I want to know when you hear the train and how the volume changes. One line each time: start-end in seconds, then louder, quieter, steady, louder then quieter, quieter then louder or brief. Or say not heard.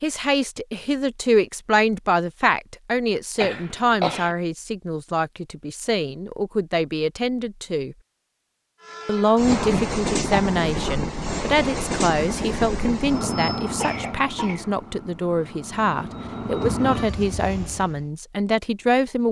8.8-18.1 quieter then louder.